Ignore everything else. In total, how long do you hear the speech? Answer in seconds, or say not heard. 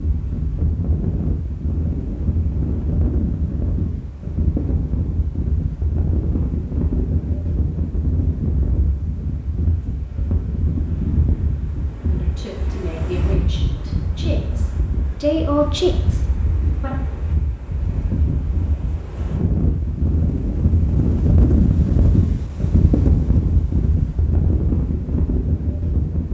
5 s.